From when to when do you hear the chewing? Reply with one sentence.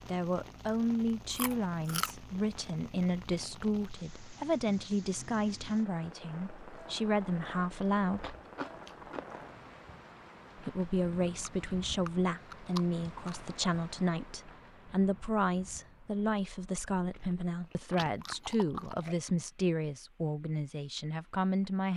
The chewing can be heard from 1.3 to 2.1 s, from 7.7 to 9.2 s, from 11.2 to 13.4 s and from 17.1 to 19.1 s.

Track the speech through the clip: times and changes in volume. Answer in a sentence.
You can hear the speech from 0.1 to 8.3 s, at a steady volume; and from 10.6 to 21.9 s, at a steady volume.